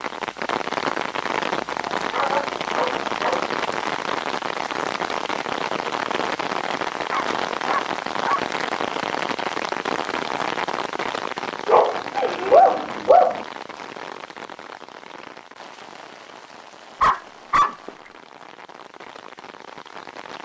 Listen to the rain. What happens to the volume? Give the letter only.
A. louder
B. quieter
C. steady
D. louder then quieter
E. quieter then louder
B.